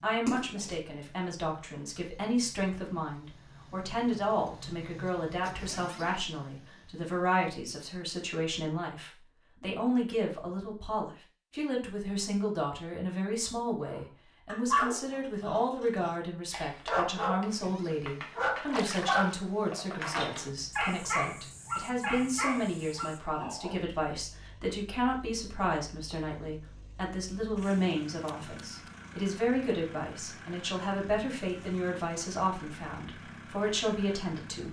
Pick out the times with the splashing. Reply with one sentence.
You can hear the splashing from 0.2 to 0.8 s, from 18.6 to 19.4 s and from 28.2 to 28.9 s.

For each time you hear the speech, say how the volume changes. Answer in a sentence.
The speech can be heard from 0.0 to 34.6 s, at a steady volume.